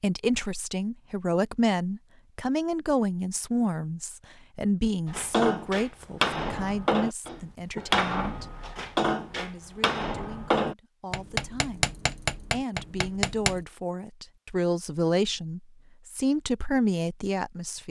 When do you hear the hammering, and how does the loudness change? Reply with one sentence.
You can hear the hammering from 5.0 to 13.7 s, at a steady volume.